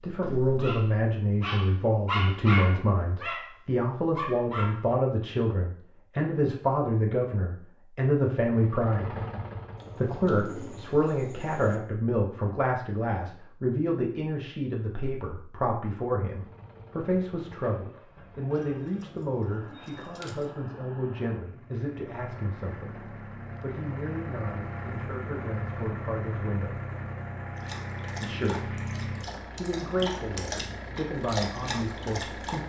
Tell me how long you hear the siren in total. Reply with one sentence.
The siren can't be heard in this clip.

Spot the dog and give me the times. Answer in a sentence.
The dog can be heard from 0.0 to 5.0 s and from 27.6 to 32.6 s.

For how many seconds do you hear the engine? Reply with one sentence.
You can hear the engine for 19 seconds altogether.